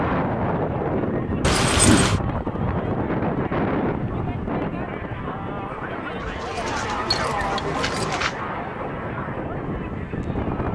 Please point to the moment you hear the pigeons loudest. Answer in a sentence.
The loudest moment of the pigeons is at 8 seconds.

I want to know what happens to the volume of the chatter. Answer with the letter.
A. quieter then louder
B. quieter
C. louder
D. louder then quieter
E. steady
D.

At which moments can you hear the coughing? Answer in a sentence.
The coughing can't be heard in this clip.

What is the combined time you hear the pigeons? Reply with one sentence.
The pigeons can be heard for 2 seconds in total.